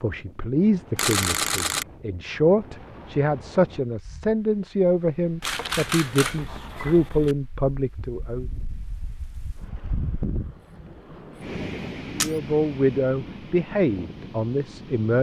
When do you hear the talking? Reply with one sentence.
The talking can be heard from 0.0 to 8.5 s and from 12.1 to 15.1 s.